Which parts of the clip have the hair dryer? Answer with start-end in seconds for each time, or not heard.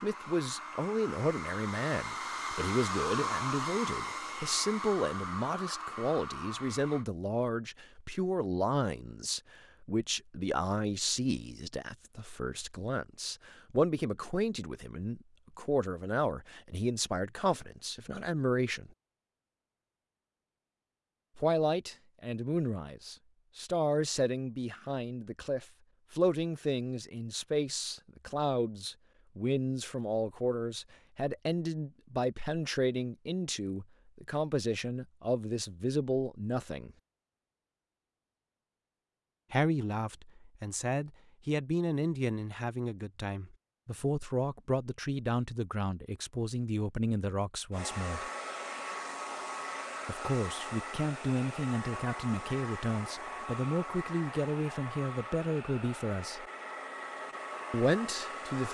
0.0-7.0, 47.7-58.6.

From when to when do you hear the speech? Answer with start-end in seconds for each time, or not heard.
0.0-18.9, 21.4-36.9, 39.5-48.2, 50.0-56.5, 57.7-58.6.